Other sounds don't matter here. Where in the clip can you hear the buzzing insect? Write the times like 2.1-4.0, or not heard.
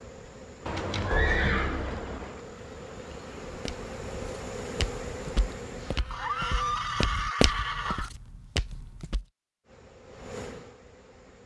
0.0-6.8, 9.6-11.4.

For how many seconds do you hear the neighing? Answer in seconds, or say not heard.
4 s.